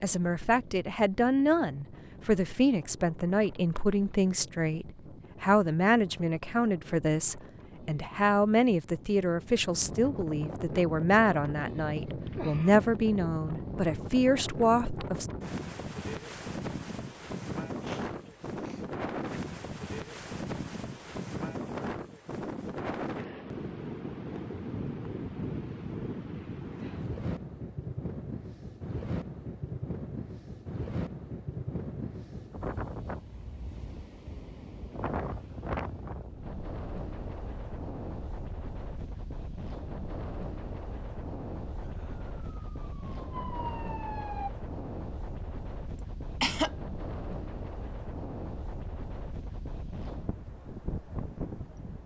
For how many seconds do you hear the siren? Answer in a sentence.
You can hear the siren for 3 seconds altogether.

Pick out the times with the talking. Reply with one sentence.
The talking can be heard from 0.0 to 15.2 s.